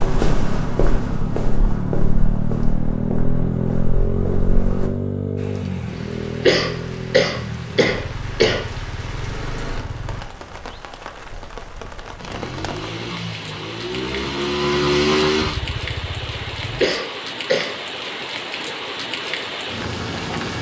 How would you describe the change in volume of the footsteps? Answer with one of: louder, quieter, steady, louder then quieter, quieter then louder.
quieter.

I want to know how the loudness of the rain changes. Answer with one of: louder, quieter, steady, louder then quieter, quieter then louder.
louder.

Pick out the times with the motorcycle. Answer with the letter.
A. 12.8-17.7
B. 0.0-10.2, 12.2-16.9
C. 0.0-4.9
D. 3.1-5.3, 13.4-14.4
B.